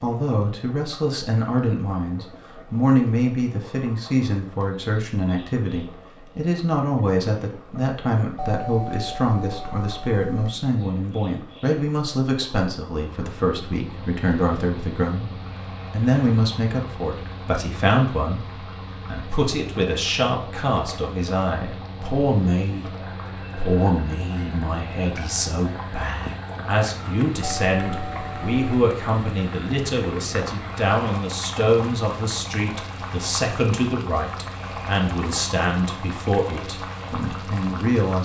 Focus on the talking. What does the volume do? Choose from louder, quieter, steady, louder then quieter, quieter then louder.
steady.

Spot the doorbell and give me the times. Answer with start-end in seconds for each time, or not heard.
8.3-10.6, 27.4-28.6.